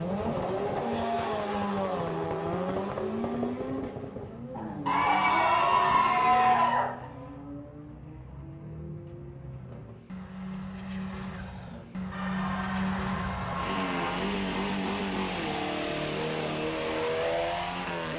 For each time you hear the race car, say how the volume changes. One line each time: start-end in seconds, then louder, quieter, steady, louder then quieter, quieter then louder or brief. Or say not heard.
0.0-18.1 quieter then louder.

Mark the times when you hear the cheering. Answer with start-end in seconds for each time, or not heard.
4.8-6.8, 12.1-14.2.